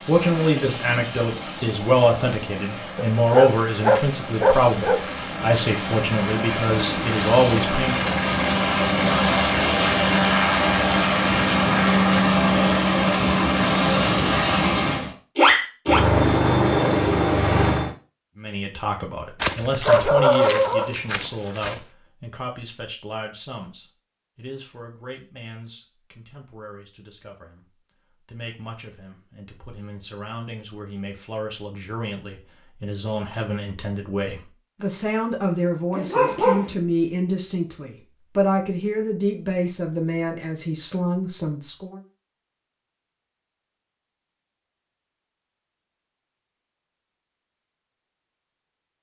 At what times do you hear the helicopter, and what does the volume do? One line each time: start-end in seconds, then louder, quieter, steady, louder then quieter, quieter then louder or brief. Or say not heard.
0.0-17.9 louder.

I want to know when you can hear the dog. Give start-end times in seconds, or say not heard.
3.0-5.0, 19.4-21.8, 35.9-36.7.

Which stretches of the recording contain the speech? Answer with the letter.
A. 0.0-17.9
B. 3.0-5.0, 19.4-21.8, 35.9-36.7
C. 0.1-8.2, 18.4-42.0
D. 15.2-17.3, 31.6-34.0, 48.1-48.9
C.